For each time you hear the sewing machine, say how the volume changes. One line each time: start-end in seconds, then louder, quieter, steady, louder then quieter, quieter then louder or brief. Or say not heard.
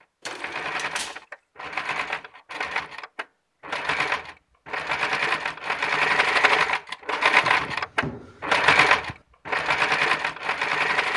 0.0-11.1 louder.